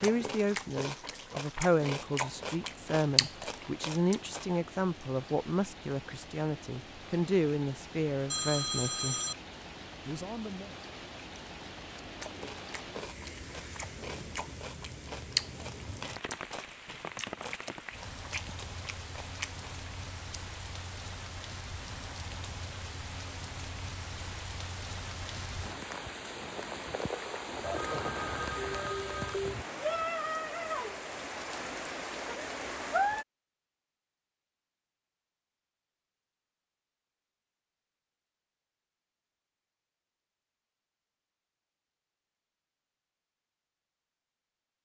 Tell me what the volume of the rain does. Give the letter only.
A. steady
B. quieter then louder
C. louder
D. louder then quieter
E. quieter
C.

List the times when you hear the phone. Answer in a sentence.
The phone can be heard from 8.3 to 9.3 s and from 27.6 to 29.6 s.